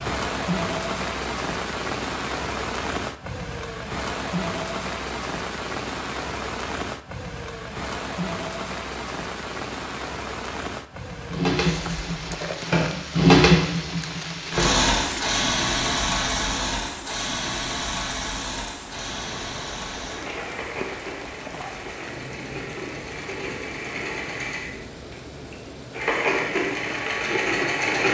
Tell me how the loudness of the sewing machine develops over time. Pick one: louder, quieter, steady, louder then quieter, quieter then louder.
quieter then louder.